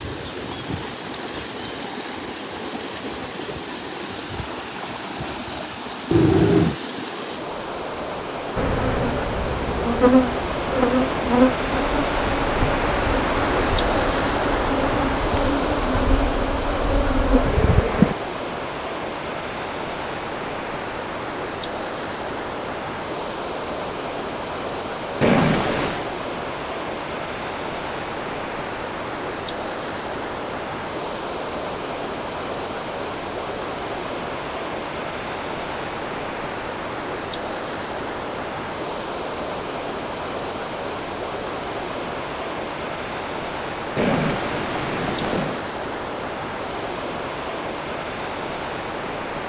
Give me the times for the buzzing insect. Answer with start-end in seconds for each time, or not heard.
8.6-18.1.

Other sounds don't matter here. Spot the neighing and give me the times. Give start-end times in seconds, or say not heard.
6.1-6.8, 25.2-26.1, 44.0-45.6.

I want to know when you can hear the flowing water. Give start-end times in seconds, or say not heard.
0.0-49.4.